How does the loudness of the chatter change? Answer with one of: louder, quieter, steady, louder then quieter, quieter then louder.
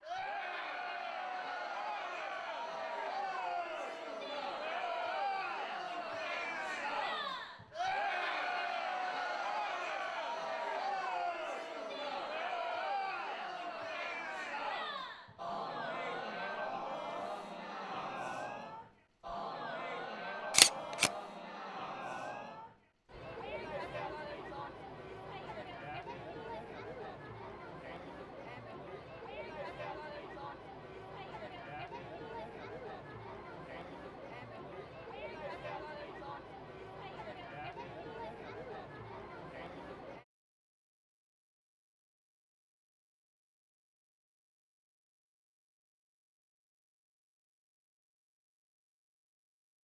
quieter.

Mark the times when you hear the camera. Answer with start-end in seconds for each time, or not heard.
20.5-21.1.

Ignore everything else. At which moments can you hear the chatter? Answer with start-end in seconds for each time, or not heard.
0.0-40.2.